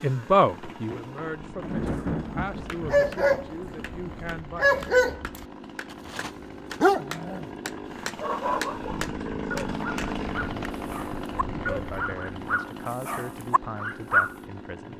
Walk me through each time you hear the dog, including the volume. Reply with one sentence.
The dog can be heard briefly from 2.9 to 3.5 s; and from 4.5 to 14.3 s, getting quieter.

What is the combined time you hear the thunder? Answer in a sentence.
The thunder can be heard for 3 seconds in total.